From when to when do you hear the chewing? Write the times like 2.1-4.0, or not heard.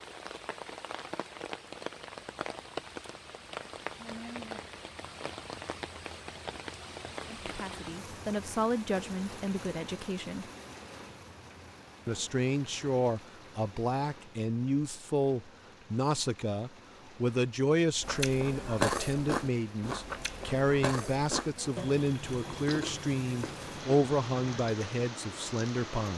18.0-24.8.